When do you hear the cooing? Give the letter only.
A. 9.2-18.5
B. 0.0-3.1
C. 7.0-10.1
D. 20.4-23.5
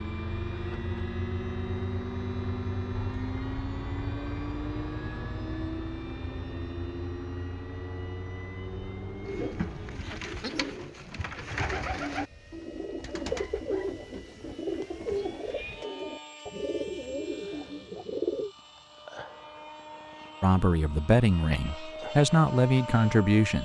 A.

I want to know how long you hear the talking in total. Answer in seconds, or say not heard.
3 s.